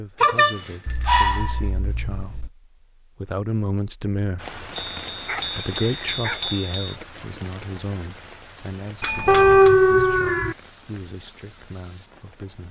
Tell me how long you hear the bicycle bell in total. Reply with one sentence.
You can hear the bicycle bell for 4 seconds altogether.